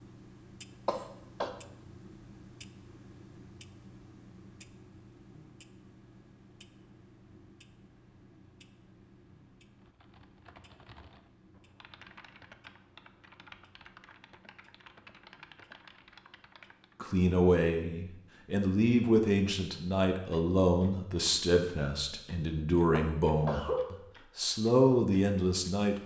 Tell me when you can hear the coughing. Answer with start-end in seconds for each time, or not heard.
0.8-1.5, 22.9-23.9.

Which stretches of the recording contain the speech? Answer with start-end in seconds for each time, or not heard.
17.0-25.9.